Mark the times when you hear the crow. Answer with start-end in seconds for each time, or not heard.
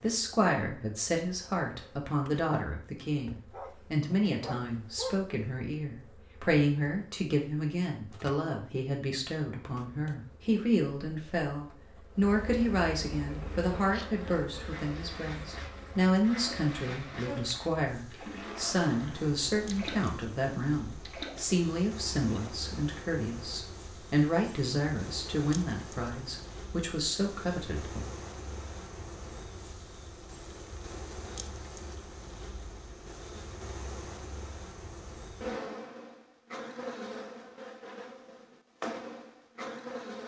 not heard.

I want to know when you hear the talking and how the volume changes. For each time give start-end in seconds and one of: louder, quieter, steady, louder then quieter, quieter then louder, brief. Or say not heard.
0.0-28.1 steady.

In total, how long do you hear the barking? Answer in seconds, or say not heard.
2 s.